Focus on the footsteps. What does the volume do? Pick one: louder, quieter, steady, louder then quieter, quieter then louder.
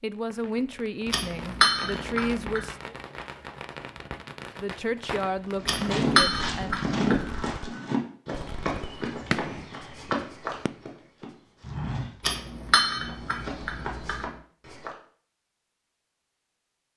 quieter.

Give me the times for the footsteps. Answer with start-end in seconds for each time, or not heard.
5.6-14.9.